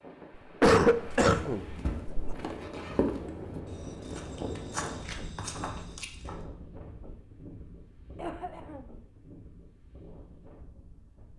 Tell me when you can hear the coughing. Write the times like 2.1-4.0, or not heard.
0.6-2.4, 8.2-8.9.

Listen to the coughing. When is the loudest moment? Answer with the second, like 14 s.
1 s.